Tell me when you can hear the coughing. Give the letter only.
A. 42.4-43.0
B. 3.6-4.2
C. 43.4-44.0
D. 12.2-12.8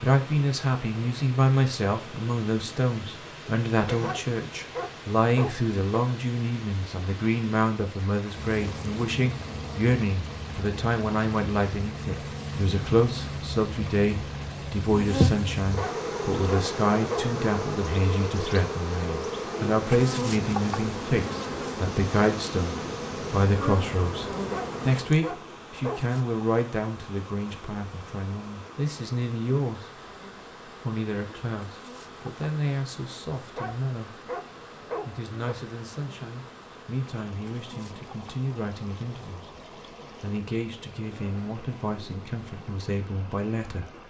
B.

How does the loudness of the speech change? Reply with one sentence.
The loudness of the speech goes down.